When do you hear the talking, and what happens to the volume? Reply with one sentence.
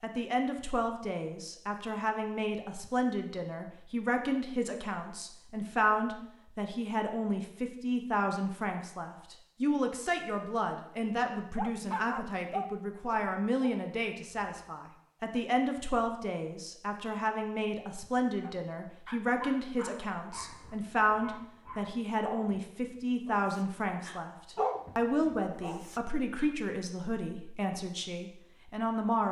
You can hear the talking from 0.0 to 29.2 s, at a steady volume.